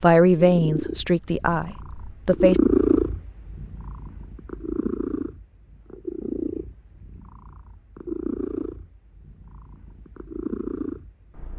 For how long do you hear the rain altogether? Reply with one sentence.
The rain can't be heard in this clip.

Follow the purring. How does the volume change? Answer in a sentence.
The volume of the purring goes down.